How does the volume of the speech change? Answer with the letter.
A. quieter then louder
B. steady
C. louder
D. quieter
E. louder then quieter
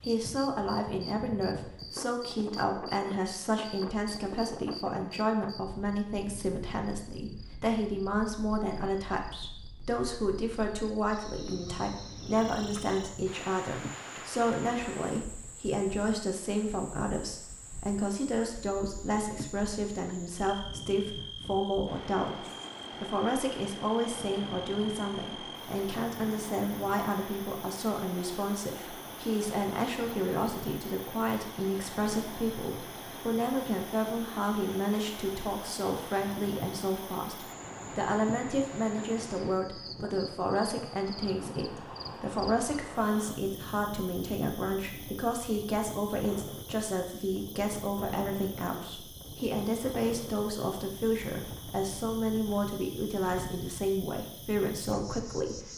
B.